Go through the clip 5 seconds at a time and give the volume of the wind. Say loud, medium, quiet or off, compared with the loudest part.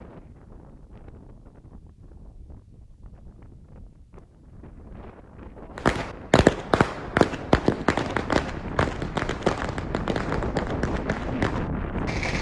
quiet, medium, loud.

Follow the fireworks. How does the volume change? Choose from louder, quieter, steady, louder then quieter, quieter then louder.
quieter.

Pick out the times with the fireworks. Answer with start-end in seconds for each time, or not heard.
5.8-12.3.